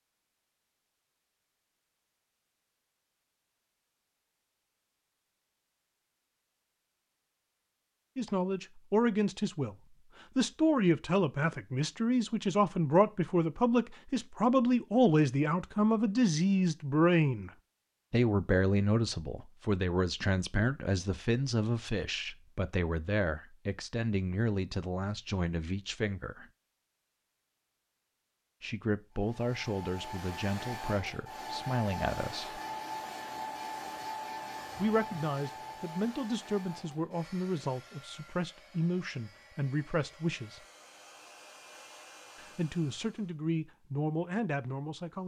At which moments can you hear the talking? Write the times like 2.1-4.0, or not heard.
8.2-17.5, 18.1-26.4, 28.6-32.6, 34.8-40.6, 42.4-45.2.